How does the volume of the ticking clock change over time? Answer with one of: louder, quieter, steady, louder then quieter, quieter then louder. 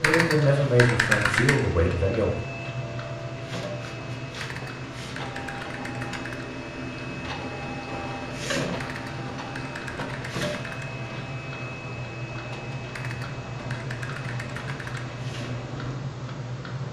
quieter then louder.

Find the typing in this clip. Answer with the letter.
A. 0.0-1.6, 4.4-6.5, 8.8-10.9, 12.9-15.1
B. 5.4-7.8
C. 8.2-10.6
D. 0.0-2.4
A.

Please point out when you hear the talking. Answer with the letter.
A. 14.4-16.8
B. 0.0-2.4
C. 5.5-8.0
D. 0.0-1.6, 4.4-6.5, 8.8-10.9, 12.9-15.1
B.